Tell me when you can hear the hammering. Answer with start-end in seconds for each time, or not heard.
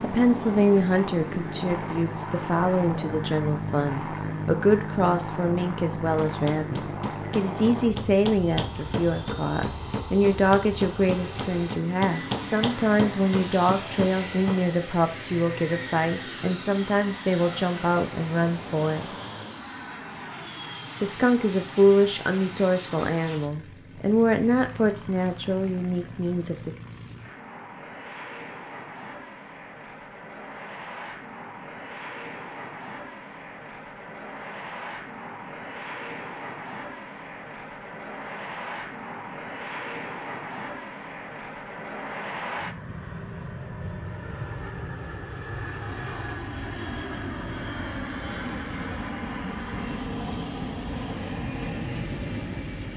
6.2-14.7.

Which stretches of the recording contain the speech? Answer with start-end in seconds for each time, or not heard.
0.0-19.1, 21.0-26.8.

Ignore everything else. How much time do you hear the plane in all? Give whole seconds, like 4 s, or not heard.
53 s.